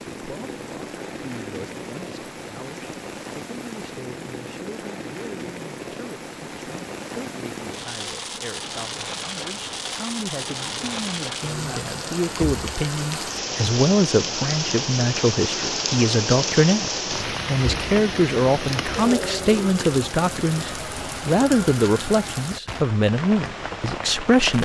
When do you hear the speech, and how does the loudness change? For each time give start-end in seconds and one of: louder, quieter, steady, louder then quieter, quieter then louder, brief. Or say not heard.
0.1-24.6 louder.